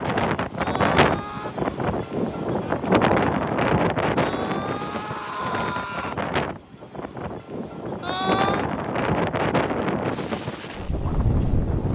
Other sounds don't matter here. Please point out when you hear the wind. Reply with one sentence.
The wind can be heard from 0.0 to 11.9 s.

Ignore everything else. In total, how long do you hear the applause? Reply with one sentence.
The applause can't be heard in this clip.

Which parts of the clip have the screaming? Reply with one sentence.
You can hear the screaming from 0.6 to 1.6 s, from 4.2 to 6.2 s and from 8.0 to 8.7 s.